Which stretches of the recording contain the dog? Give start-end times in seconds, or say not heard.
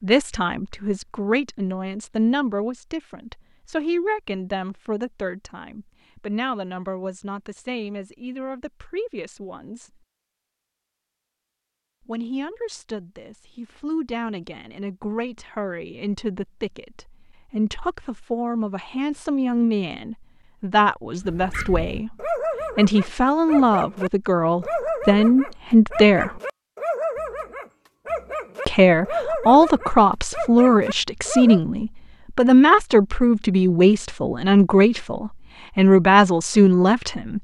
21.2-31.6.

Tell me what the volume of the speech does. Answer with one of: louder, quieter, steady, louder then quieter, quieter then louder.
quieter then louder.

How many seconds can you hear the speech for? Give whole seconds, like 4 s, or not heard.
33 s.